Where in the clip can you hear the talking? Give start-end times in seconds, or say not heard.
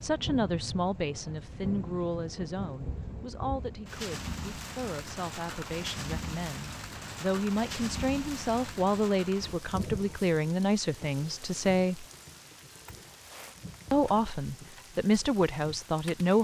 0.0-12.1, 13.9-16.3.